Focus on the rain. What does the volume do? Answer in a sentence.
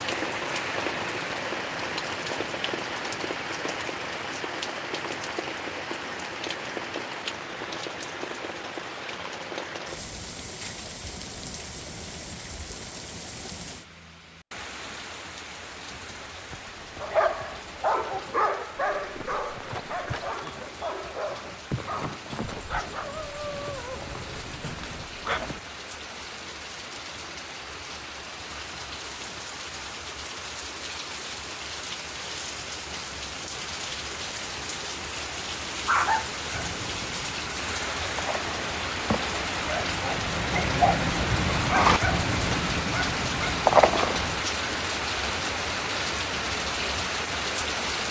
The volume of the rain goes down, then up.